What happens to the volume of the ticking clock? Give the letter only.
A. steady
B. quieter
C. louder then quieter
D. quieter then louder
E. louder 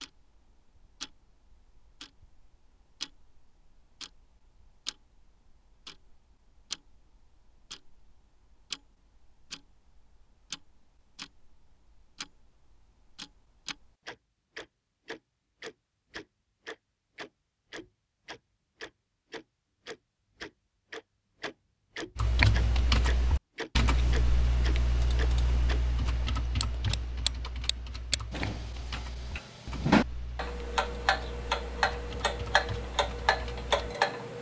E.